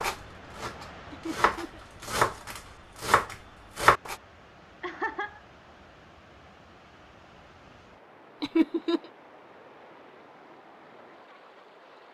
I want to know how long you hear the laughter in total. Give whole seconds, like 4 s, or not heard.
2 s.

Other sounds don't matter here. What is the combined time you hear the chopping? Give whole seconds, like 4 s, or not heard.
4 s.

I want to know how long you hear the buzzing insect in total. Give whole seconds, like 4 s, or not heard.
not heard.